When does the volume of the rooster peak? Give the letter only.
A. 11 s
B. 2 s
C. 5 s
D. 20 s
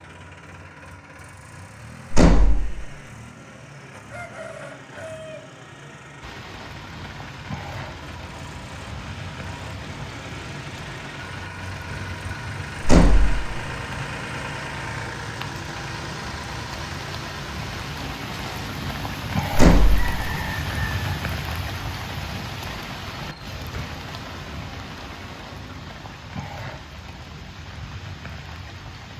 D.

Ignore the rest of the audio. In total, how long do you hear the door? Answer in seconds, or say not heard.
2 s.